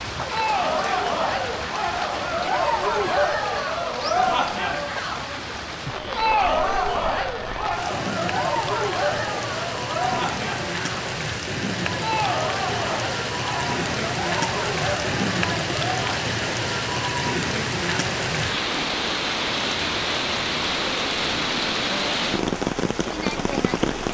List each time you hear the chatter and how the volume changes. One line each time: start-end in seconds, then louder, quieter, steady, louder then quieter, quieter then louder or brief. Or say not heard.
0.1-16.2 quieter.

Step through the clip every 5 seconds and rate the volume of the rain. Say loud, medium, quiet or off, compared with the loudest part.
medium, medium, loud, loud, loud.